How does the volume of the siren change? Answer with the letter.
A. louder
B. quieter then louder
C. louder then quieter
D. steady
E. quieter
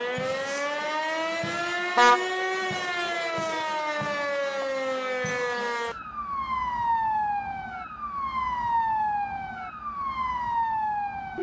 D.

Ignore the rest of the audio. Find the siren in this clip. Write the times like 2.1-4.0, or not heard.
0.0-11.3.